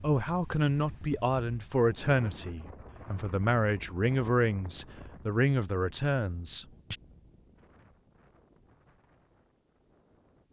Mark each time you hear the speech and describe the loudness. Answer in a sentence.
You can hear the speech from 0.0 to 7.0 s, at a steady volume.